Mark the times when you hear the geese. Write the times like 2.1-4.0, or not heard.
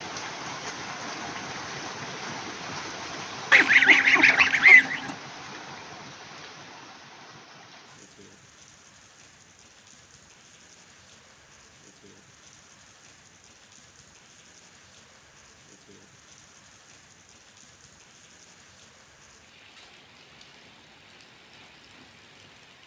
3.5-5.1.